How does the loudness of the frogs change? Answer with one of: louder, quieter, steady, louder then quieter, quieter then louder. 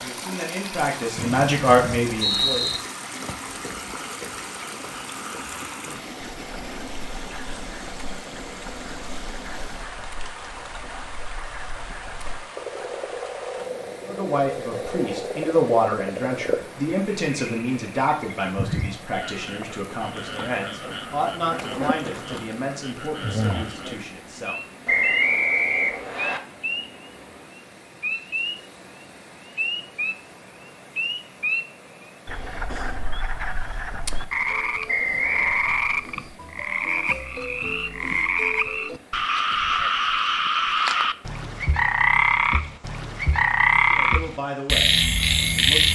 louder.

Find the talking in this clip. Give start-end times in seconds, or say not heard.
0.0-2.8, 14.1-25.1, 43.9-45.9.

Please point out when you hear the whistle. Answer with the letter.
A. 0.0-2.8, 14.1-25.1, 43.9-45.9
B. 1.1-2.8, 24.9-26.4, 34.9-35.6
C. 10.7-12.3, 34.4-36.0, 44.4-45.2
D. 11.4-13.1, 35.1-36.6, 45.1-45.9
B.